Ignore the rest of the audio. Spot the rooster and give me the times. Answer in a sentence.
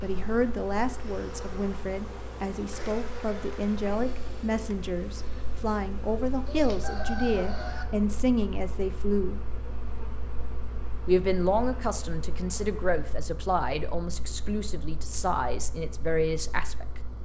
The rooster can be heard from 6.5 to 7.8 s.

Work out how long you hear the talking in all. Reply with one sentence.
The talking can be heard for 15 seconds in total.